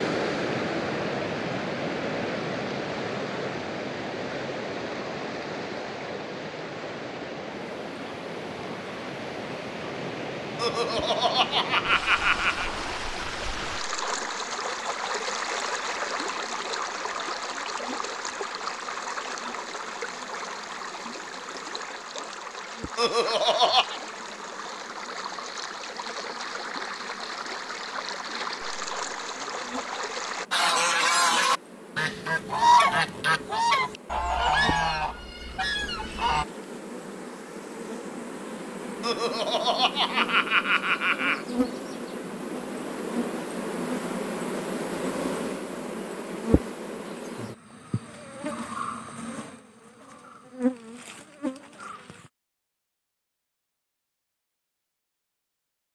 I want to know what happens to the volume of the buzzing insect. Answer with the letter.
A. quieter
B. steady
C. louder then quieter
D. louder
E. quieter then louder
D.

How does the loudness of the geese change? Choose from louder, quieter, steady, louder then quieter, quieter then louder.
quieter.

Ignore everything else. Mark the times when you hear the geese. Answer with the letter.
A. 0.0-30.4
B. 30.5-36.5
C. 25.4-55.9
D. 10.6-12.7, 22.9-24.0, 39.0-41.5
B.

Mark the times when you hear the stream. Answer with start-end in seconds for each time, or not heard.
0.0-30.4.